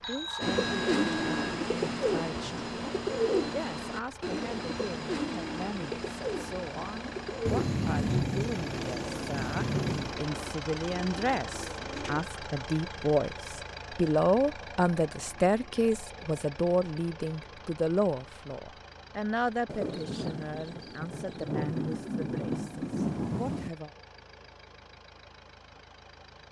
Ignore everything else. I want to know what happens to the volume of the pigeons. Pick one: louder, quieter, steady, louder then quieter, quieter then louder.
quieter.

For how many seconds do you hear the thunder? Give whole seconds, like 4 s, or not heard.
7 s.